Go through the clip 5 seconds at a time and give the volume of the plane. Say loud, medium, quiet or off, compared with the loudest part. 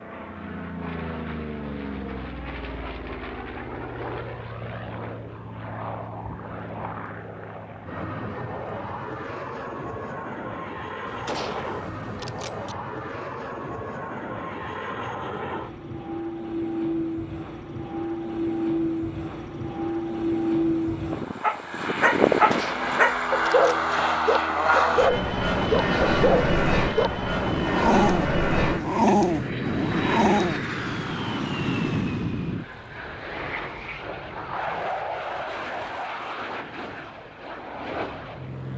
medium, medium, medium, medium, loud, loud, medium, medium.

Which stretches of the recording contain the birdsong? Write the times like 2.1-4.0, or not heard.
not heard.